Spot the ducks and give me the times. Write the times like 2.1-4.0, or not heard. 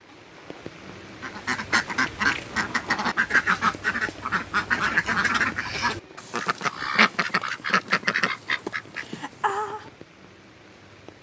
1.2-9.8.